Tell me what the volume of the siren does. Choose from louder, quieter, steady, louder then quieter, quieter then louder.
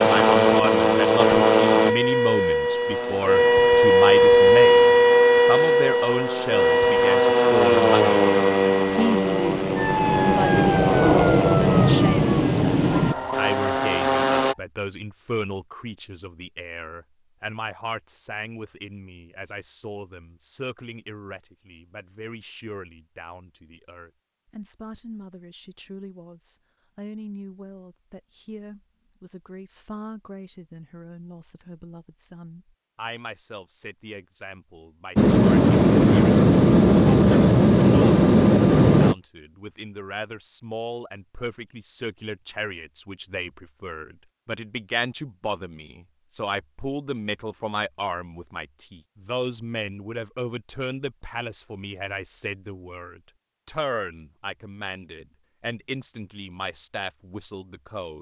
louder then quieter.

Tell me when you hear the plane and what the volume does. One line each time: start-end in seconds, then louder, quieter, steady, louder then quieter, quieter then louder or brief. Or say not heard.
0.0-14.6 quieter then louder
35.1-39.1 steady.